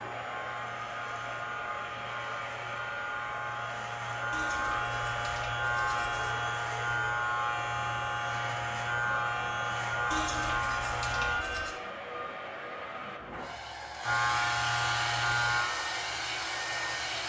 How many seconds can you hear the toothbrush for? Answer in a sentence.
You can hear the toothbrush for 4 seconds altogether.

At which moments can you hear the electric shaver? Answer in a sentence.
You can hear the electric shaver from 0.0 to 11.4 s and from 14.0 to 17.2 s.